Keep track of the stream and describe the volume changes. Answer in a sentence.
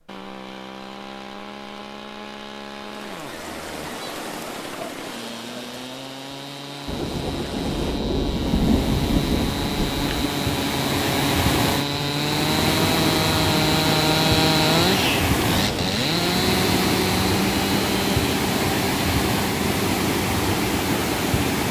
The volume of the stream goes up.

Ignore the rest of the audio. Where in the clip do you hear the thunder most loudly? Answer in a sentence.
The volume of the thunder peaks at 9 seconds.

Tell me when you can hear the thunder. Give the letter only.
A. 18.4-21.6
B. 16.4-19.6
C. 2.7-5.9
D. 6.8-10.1
D.